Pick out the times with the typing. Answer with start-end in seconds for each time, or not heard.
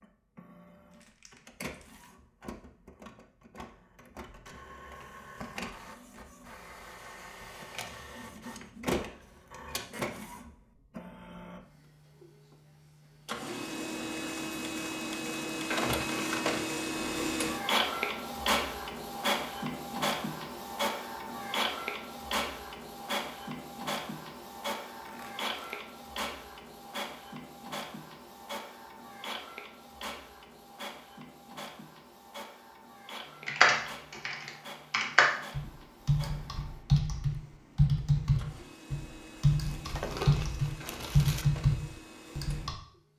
33.5-42.8.